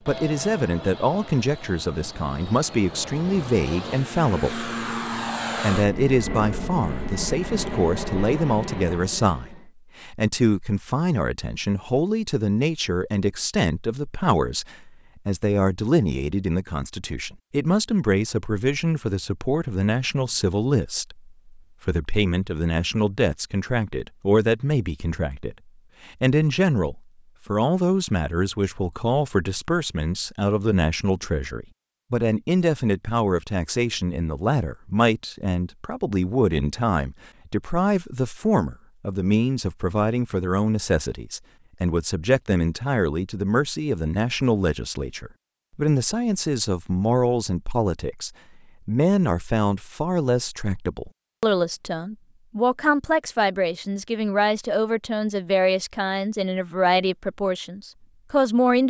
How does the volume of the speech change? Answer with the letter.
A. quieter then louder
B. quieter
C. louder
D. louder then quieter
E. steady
E.